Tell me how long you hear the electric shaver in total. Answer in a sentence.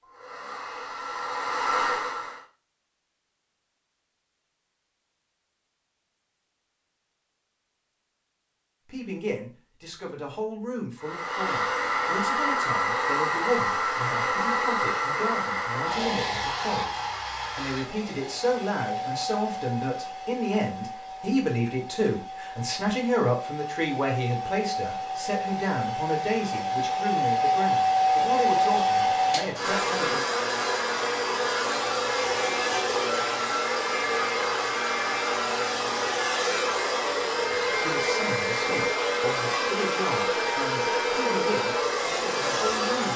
The electric shaver can't be heard in this clip.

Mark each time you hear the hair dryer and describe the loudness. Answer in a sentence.
You can hear the hair dryer briefly from 0.0 to 2.5 s; and from 11.0 to 43.1 s, getting quieter then louder.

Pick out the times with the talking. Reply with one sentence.
You can hear the talking from 8.8 to 30.2 s and from 37.7 to 43.1 s.